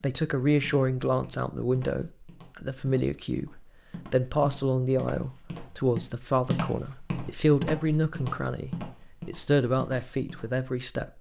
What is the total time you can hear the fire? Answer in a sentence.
You can't hear the fire here.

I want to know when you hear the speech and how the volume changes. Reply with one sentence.
The speech can be heard from 0.0 to 11.1 s, at a steady volume.